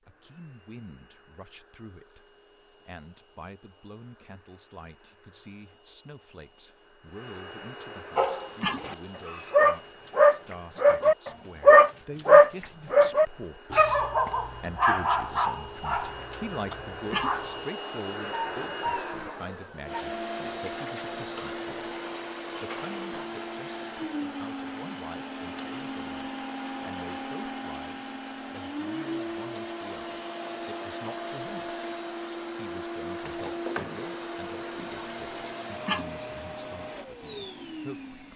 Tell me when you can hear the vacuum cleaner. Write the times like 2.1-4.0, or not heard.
0.0-38.3.